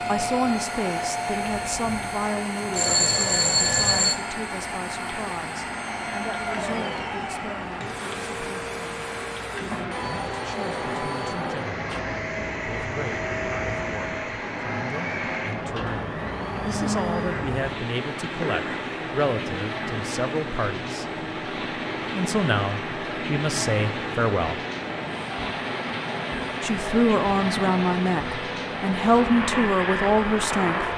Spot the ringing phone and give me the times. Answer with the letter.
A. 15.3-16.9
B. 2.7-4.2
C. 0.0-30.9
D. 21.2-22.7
B.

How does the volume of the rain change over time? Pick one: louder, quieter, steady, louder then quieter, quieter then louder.
louder.